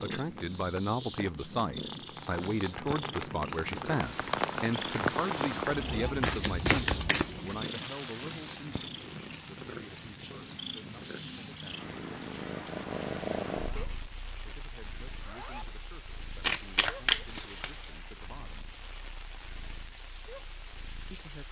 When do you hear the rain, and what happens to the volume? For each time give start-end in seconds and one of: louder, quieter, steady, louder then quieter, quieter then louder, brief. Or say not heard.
0.0-21.4 quieter.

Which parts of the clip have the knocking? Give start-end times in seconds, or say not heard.
not heard.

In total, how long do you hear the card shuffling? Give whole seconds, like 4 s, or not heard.
3 s.